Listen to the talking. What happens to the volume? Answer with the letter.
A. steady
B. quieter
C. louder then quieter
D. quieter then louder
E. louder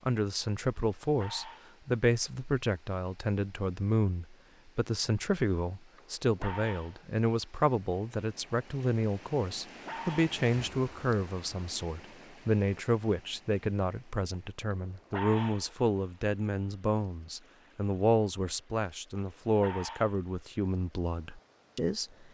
A.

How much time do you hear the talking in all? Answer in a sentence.
You can hear the talking for 22 seconds altogether.